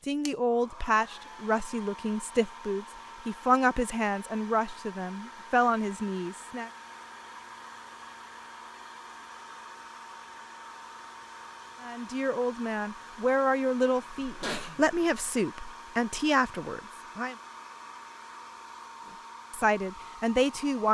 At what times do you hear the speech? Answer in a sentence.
You can hear the speech from 0.1 to 6.7 s, from 11.8 to 17.4 s and from 19.5 to 20.8 s.